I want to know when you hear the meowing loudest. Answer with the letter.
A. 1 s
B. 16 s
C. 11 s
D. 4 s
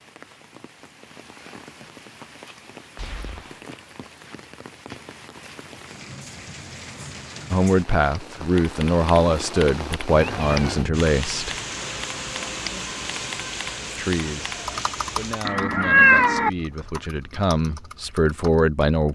B.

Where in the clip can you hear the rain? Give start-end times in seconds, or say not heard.
0.0-15.5.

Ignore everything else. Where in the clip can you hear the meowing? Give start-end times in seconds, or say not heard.
3.0-3.6, 10.1-10.9, 15.4-16.5.